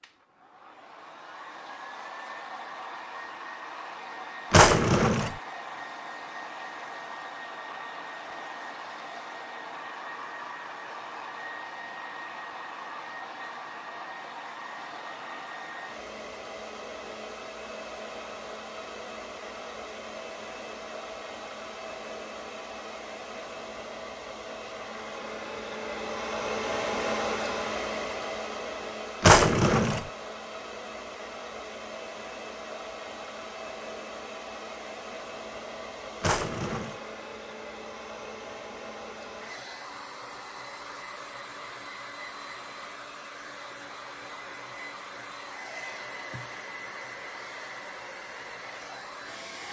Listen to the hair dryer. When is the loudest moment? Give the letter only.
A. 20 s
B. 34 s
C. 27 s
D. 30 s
C.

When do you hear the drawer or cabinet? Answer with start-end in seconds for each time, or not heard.
4.5-5.3, 29.2-30.1, 36.2-37.0.